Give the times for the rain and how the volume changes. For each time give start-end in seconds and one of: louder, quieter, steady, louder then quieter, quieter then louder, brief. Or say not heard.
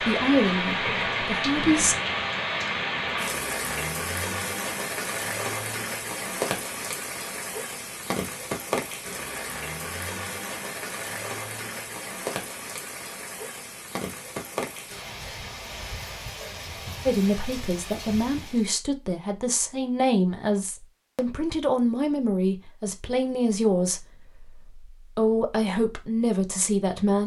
0.0-18.8 quieter.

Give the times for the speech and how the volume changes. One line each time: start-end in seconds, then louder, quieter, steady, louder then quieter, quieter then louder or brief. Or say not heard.
0.0-1.9 brief
17.1-27.2 steady.